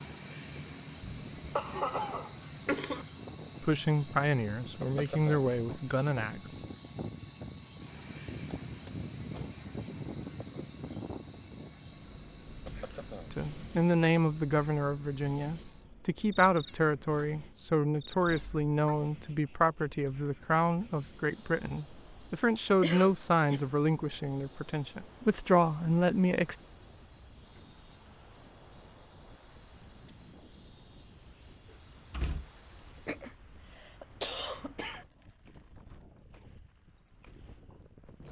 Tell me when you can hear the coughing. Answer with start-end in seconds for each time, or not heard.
1.0-3.0, 22.8-23.7, 33.0-35.0.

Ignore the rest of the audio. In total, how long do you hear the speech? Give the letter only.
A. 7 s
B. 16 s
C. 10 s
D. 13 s
B.